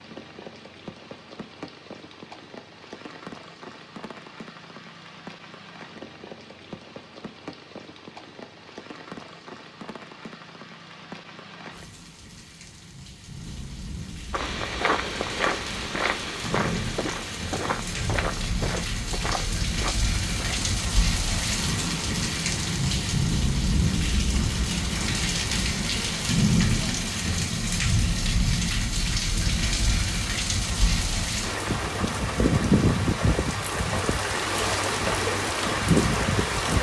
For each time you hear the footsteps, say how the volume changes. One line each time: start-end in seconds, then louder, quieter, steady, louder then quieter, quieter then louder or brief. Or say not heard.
14.3-20.8 quieter.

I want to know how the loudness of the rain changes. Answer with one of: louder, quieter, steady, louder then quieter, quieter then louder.
louder.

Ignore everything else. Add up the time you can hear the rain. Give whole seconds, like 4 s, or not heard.
37 s.